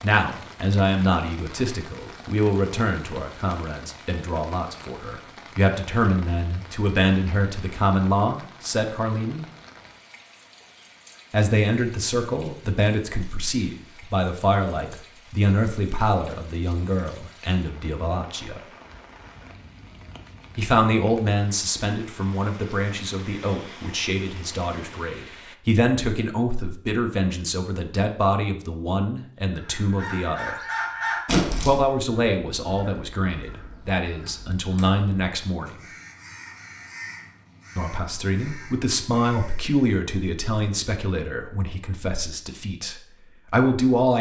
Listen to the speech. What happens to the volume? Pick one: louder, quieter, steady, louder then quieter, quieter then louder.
steady.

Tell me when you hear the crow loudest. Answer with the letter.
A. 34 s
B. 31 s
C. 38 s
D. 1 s
B.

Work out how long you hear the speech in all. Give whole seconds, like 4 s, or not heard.
37 s.